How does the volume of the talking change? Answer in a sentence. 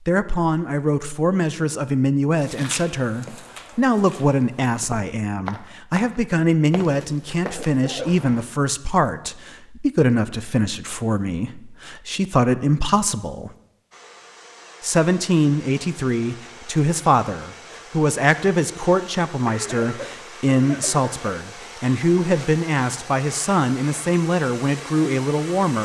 The loudness of the talking stays about the same.